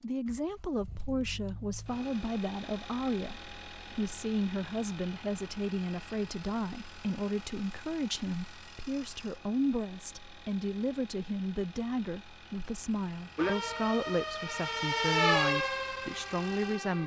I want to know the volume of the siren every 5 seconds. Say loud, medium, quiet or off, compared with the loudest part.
off, off, loud, loud.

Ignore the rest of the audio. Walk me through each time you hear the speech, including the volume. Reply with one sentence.
You can hear the speech from 0.0 to 17.0 s, at a steady volume.